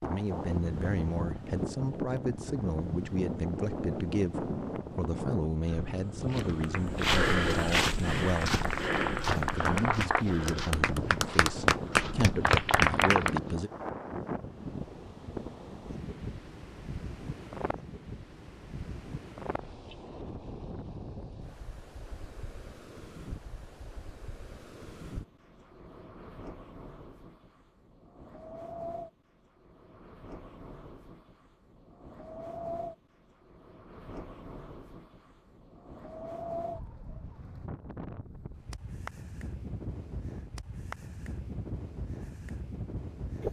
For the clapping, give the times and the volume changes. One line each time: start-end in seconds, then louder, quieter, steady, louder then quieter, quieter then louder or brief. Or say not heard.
6.6-13.4 louder.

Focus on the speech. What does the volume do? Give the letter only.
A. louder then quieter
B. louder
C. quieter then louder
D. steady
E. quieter
D.